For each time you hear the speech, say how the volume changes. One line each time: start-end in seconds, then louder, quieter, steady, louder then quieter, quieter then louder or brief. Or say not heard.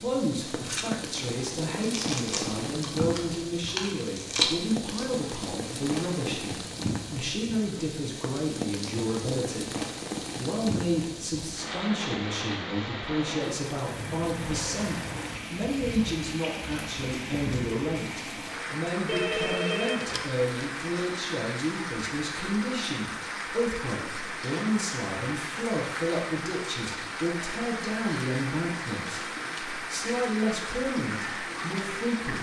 0.0-9.7 steady
10.3-32.3 steady.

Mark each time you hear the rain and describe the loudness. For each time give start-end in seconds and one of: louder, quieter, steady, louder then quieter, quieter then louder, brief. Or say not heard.
0.0-32.3 steady.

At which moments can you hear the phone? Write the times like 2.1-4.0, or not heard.
19.1-20.4.